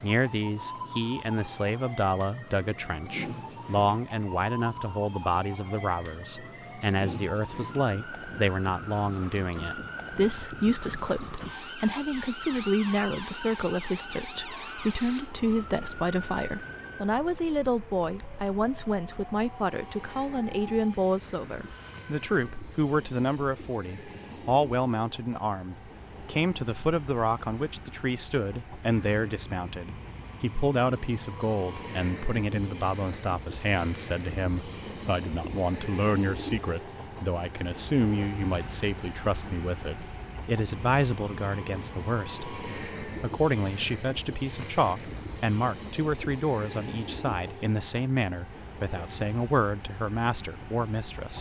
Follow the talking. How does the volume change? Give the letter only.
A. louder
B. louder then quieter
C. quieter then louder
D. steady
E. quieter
D.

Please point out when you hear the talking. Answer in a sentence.
You can hear the talking from 0.0 to 51.3 s.